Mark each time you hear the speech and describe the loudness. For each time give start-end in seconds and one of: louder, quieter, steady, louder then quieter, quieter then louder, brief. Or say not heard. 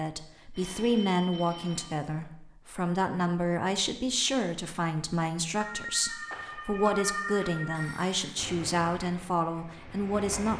0.0-10.5 steady.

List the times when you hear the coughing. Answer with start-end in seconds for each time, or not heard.
not heard.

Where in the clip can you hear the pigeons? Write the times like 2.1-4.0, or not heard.
not heard.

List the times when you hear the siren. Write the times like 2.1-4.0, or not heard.
5.5-8.0.